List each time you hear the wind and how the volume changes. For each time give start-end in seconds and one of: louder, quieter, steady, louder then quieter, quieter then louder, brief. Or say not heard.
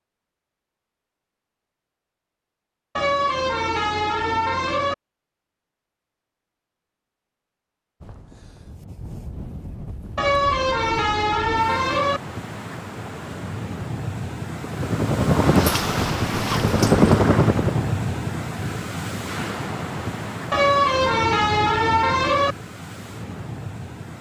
8.0-24.1 louder then quieter.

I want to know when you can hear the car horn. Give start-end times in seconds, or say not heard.
3.0-5.0, 10.2-12.2, 20.5-22.6.